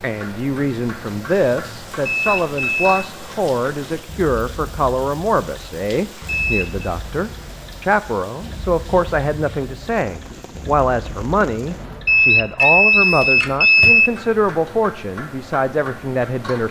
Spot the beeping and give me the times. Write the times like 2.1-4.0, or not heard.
2.0-3.0, 6.2-6.8, 12.1-14.1.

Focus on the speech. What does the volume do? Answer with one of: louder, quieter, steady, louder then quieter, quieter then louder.
steady.